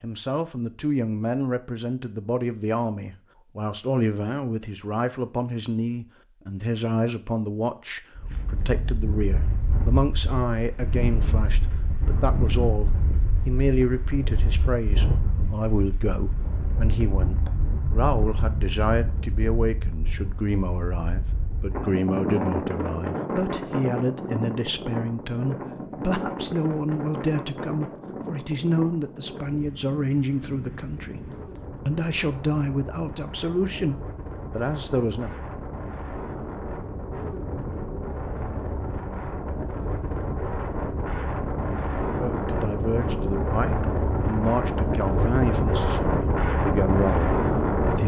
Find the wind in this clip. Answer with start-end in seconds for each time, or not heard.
8.2-48.0.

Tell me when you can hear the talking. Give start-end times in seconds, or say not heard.
0.0-35.3, 42.1-48.0.